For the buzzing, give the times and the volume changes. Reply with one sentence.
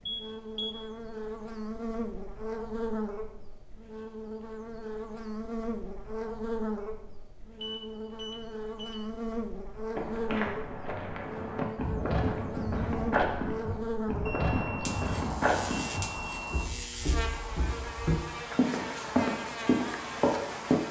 The buzzing can be heard from 0.0 to 20.8 s, at a steady volume.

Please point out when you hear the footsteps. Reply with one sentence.
You can hear the footsteps from 9.9 to 20.8 s.